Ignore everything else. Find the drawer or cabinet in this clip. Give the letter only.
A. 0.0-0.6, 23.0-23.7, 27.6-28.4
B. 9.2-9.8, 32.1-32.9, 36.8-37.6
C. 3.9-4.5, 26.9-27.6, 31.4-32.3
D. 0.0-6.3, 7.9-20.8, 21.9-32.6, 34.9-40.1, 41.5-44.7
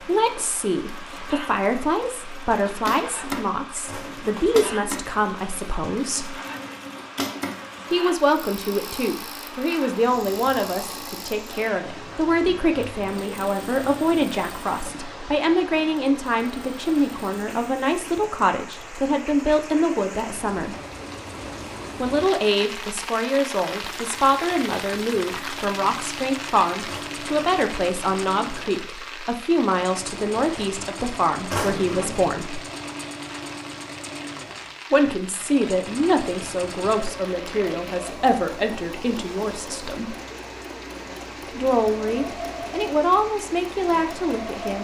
C.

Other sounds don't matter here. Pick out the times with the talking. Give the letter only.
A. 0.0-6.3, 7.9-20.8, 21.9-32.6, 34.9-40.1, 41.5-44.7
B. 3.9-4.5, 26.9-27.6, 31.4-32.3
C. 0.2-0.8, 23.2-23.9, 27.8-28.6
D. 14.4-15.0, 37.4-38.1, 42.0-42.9
A.